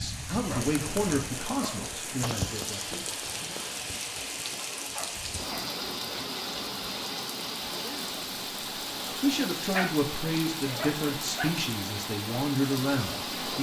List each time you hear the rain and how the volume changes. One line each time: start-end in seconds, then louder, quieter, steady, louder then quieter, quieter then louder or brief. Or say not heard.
0.0-13.5 steady.